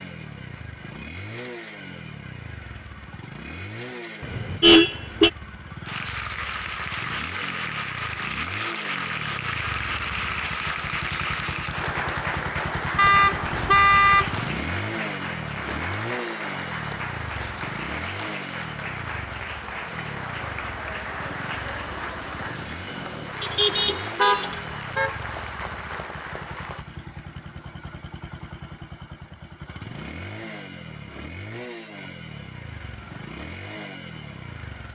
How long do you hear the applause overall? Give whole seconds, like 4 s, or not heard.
21 s.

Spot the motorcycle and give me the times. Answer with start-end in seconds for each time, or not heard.
0.0-34.9.